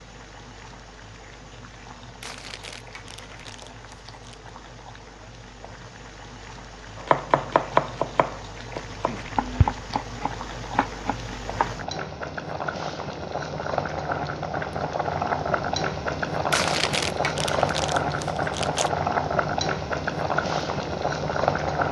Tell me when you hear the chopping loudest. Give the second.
8 s.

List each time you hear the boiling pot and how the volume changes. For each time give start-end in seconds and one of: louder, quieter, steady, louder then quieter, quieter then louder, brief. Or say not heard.
0.0-21.8 louder.